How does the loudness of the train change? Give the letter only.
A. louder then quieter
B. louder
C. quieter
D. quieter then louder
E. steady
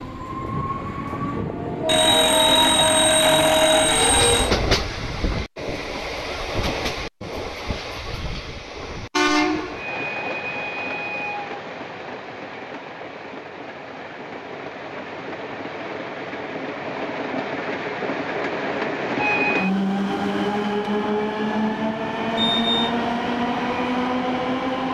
D.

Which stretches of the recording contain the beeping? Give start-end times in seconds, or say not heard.
1.9-4.5, 22.4-22.9.